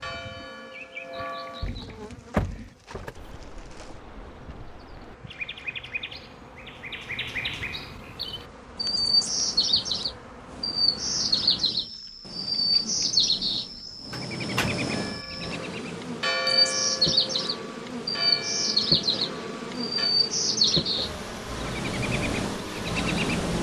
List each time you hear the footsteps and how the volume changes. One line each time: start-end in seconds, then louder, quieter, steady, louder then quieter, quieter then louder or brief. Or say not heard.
not heard.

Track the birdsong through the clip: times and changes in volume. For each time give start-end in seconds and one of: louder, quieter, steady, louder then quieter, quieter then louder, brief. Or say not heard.
0.0-23.5 louder.